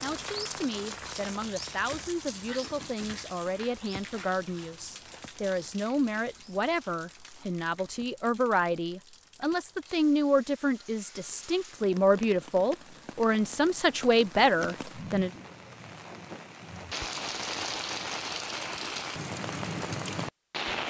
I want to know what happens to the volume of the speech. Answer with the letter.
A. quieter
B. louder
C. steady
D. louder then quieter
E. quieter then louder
B.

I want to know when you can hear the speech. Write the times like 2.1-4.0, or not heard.
0.0-15.3.